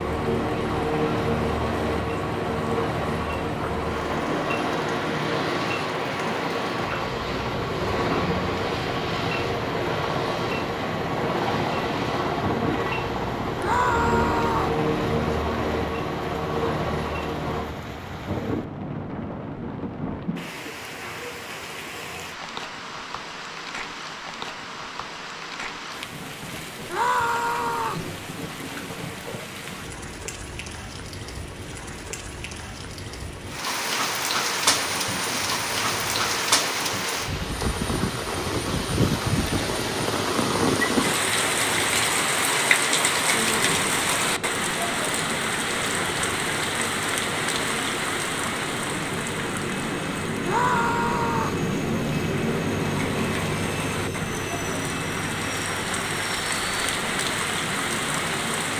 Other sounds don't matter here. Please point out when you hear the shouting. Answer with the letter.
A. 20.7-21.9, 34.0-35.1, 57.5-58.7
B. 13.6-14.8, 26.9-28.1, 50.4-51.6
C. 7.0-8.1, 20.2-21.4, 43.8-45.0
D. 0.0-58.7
B.